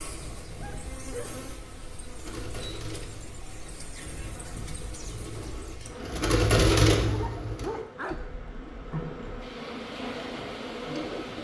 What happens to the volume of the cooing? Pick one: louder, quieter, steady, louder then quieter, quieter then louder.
louder then quieter.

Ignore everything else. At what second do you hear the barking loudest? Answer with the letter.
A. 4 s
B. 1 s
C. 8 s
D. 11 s
C.